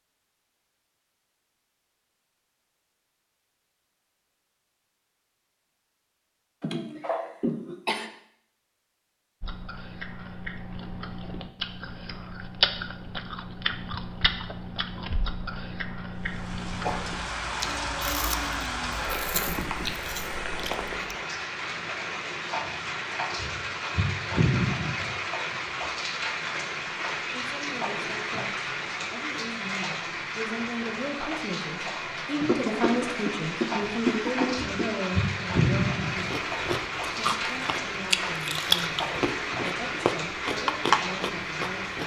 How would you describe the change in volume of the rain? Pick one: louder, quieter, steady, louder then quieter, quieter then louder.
steady.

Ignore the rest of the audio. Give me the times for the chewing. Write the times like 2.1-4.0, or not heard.
9.4-20.9, 36.1-42.0.